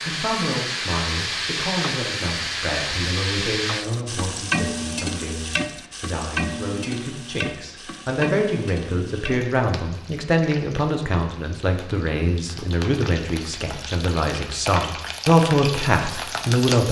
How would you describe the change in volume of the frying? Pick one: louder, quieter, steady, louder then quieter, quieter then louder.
quieter then louder.